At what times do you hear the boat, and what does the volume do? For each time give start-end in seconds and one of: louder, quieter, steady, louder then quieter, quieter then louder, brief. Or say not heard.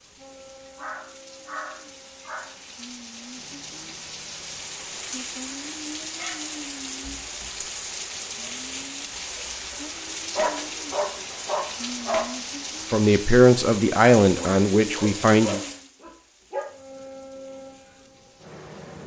0.0-5.0 quieter
16.6-19.0 brief.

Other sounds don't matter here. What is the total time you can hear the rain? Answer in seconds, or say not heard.
19 s.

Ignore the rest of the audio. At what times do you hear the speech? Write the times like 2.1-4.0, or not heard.
12.9-15.6.